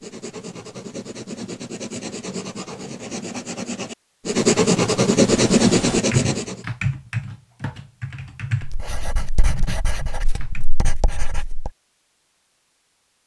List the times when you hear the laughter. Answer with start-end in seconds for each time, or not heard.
not heard.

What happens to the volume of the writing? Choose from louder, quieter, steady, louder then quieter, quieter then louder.
louder then quieter.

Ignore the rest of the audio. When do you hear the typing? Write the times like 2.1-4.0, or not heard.
5.2-10.7.